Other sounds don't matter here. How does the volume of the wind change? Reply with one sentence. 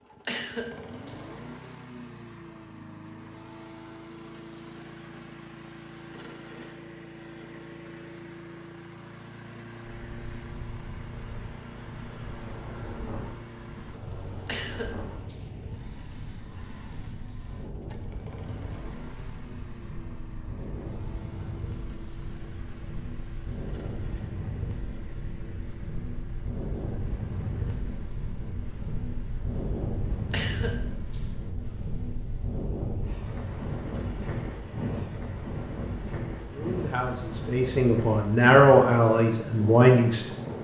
The volume of the wind goes up.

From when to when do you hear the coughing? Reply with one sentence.
You can hear the coughing from 0.2 to 1.2 s, from 14.4 to 15.4 s and from 30.3 to 31.3 s.